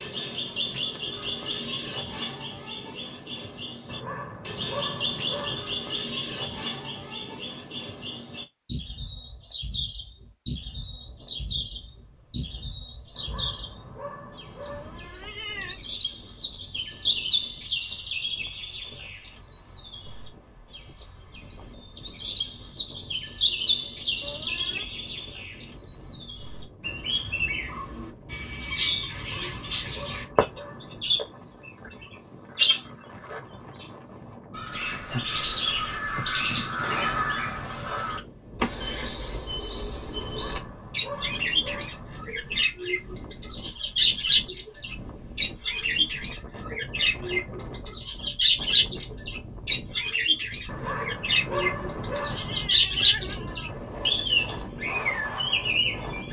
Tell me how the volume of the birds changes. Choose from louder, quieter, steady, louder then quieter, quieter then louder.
louder.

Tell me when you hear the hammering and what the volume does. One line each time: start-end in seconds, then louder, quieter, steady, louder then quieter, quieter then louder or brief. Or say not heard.
not heard.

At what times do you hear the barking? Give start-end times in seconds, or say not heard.
3.9-5.7, 13.2-15.1, 29.1-31.1, 40.2-42.2, 50.6-52.7.